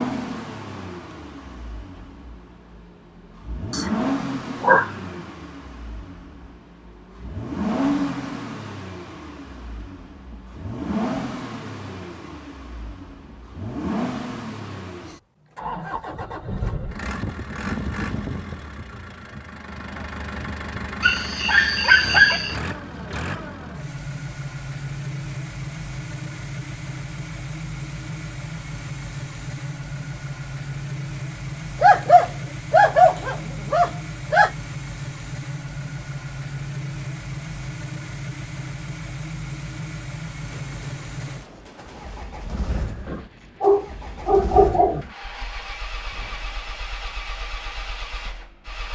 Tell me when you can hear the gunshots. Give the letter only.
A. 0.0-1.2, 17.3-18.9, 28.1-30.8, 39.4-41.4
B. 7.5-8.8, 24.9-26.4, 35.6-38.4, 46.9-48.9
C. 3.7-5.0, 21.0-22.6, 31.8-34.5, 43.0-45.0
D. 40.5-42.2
D.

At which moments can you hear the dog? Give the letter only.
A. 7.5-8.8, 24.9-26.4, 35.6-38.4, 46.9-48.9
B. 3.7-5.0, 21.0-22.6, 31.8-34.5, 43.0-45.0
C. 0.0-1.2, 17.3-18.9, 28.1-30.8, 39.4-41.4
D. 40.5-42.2
B.